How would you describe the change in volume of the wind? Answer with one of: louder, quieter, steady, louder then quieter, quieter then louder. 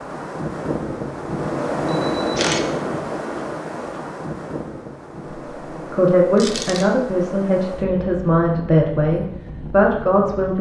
quieter.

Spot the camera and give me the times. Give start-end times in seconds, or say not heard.
1.9-2.6, 6.3-6.8.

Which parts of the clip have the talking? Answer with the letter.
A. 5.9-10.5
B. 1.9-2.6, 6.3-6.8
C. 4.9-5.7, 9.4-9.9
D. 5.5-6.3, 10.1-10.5
A.